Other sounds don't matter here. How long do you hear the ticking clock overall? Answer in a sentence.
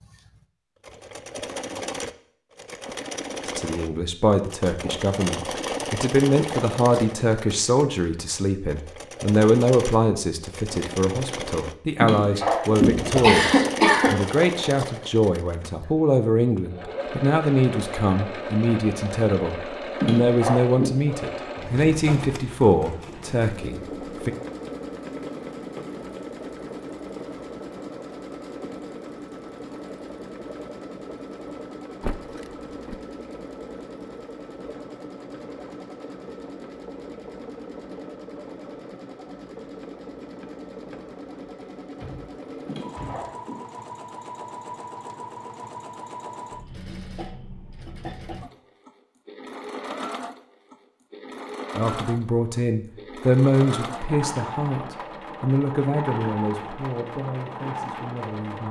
The ticking clock can't be heard in this clip.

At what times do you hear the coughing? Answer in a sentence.
You can hear the coughing from 12.0 to 14.2 s, from 19.9 to 20.9 s and from 42.6 to 43.5 s.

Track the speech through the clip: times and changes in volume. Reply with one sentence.
You can hear the speech from 3.5 to 24.3 s, at a steady volume; and from 51.8 to 58.6 s, getting quieter.